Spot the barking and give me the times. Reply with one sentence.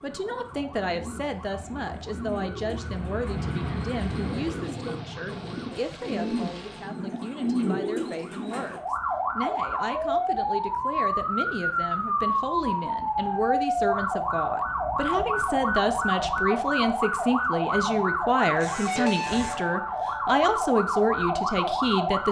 You can't hear the barking here.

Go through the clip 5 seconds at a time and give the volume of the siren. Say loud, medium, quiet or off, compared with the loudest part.
quiet, medium, loud, loud, loud.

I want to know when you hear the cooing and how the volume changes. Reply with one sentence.
You can hear the cooing from 0.0 to 8.8 s, getting louder.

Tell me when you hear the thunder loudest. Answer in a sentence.
The loudest moment of the thunder is at 4 seconds.